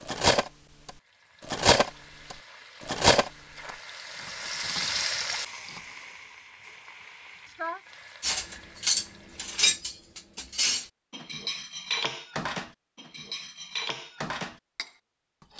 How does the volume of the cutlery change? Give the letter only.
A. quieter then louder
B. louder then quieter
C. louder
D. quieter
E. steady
D.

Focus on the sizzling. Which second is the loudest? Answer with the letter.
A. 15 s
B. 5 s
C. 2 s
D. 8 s
B.